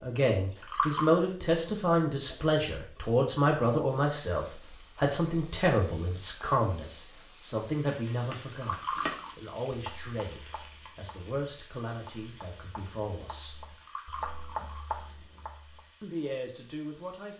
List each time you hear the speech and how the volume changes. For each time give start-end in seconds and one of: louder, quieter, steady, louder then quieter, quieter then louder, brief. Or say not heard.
0.0-13.6 quieter
16.0-17.3 brief.